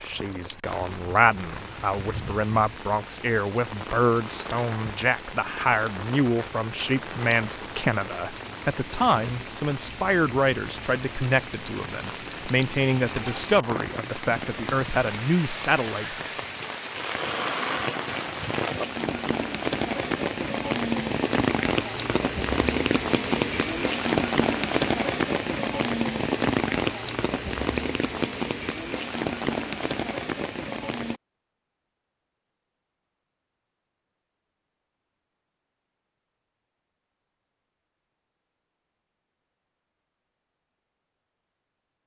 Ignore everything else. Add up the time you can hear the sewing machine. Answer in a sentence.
The sewing machine can't be heard in this clip.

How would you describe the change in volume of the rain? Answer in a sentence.
The volume of the rain goes up.